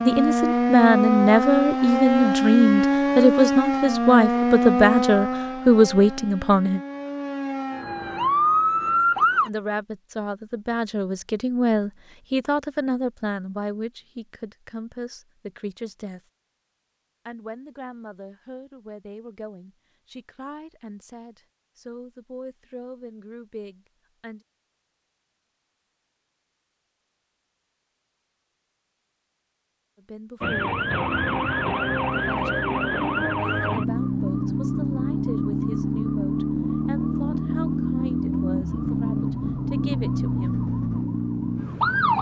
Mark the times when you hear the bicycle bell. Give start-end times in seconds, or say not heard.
not heard.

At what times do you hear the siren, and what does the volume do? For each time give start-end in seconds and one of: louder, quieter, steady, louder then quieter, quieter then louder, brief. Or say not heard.
0.0-9.5 quieter then louder
30.4-42.1 steady.